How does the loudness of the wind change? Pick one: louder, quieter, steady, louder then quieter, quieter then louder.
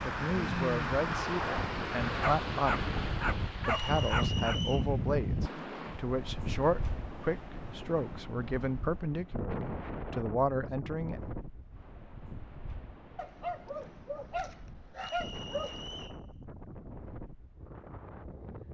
quieter.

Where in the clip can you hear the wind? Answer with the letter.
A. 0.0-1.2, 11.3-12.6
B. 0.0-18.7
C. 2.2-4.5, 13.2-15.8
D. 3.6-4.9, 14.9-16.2
B.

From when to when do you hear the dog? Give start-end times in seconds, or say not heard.
2.2-4.5, 13.2-15.8.